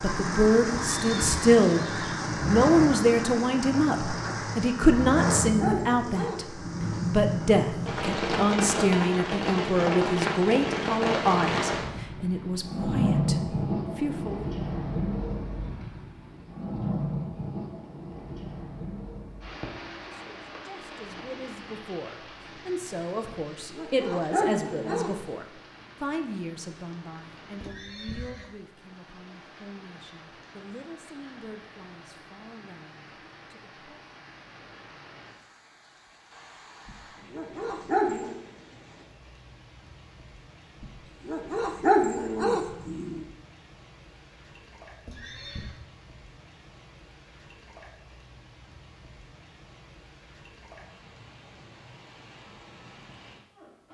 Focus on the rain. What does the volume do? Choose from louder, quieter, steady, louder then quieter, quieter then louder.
quieter.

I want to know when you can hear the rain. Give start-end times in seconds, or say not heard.
0.0-53.8.